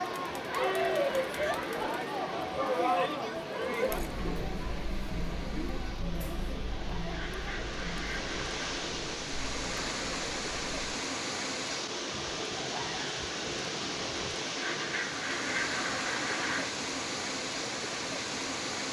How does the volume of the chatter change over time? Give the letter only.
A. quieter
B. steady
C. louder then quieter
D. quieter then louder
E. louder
A.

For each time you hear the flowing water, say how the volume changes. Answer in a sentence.
You can hear the flowing water from 0.0 to 18.8 s, getting louder.